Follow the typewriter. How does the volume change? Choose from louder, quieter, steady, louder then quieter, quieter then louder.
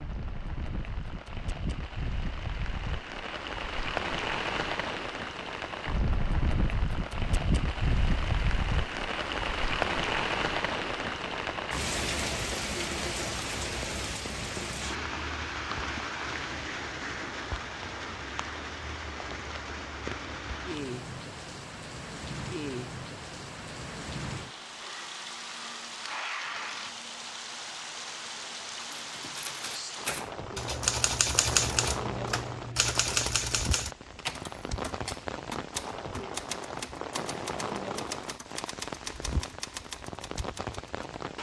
quieter.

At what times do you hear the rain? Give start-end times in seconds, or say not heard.
0.0-41.3.